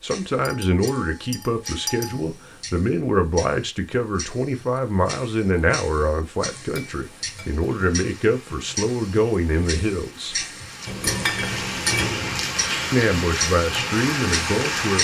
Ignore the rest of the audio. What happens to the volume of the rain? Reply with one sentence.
The loudness of the rain goes up.